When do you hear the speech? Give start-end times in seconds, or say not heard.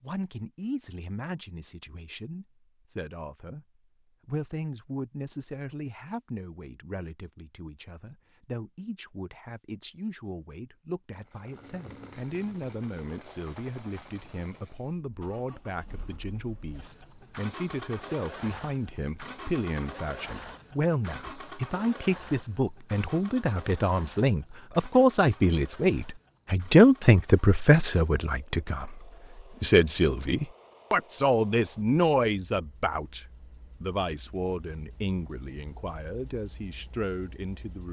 0.0-3.6, 4.2-37.8.